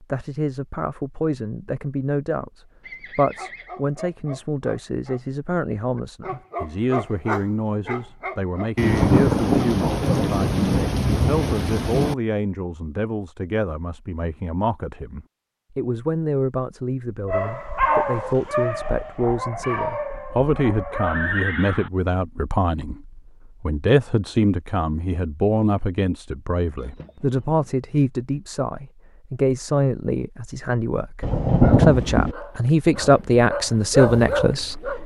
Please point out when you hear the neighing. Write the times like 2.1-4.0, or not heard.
2.8-3.7, 21.0-21.9, 26.8-27.8.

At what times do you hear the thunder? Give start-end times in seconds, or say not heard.
8.8-12.2, 31.2-32.4.